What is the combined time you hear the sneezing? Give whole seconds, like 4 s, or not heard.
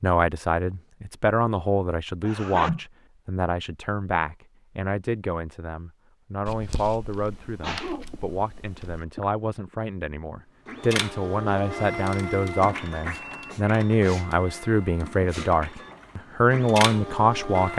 5 s.